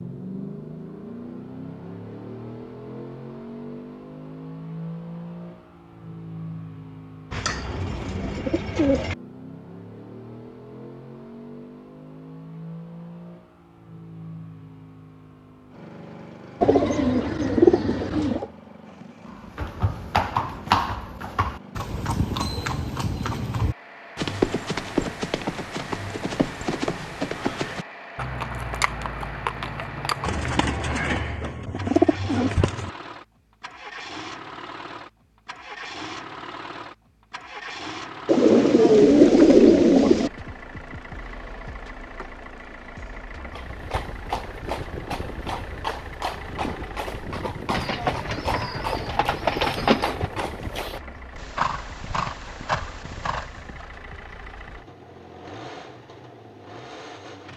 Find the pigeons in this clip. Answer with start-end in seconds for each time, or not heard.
7.3-9.2, 16.6-18.4, 30.2-32.9, 38.2-40.3, 47.7-50.3.